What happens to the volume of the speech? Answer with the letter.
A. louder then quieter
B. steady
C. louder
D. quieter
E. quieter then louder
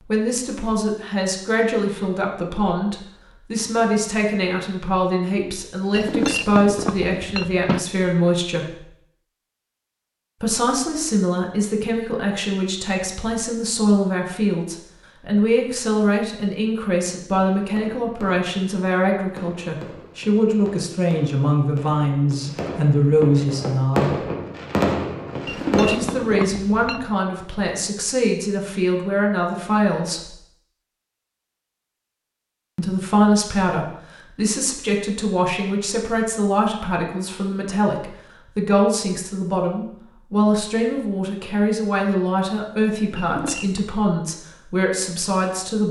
B.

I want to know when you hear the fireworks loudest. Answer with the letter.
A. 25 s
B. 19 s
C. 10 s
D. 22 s
A.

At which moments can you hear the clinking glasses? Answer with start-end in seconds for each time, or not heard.
5.9-7.8, 25.4-27.1, 43.1-43.9.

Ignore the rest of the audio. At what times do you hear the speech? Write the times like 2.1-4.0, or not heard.
0.0-8.8, 10.4-24.2, 25.7-30.4, 32.8-45.8.